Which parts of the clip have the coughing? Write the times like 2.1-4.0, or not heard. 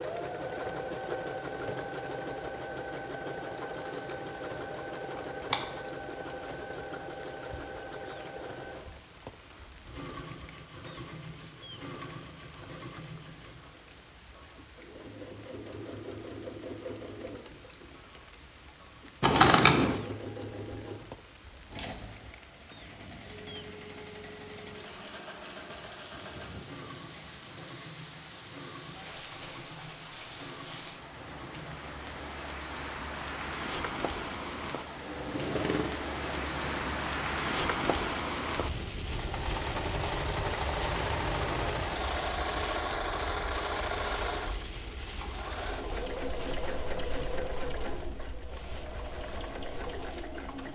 not heard.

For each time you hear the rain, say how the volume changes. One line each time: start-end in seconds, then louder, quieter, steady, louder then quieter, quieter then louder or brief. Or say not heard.
0.0-50.6 louder then quieter.